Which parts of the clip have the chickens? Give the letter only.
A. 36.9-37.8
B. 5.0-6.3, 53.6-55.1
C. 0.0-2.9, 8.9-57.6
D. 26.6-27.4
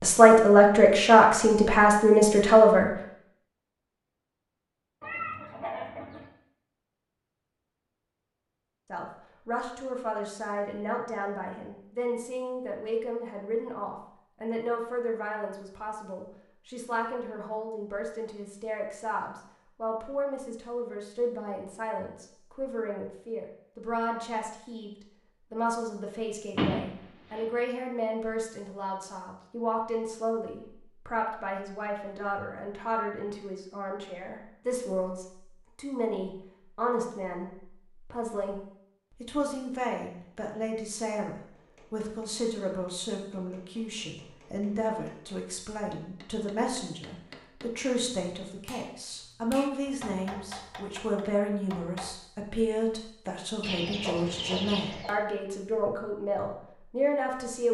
B.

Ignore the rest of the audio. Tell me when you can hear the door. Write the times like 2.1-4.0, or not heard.
26.6-27.4.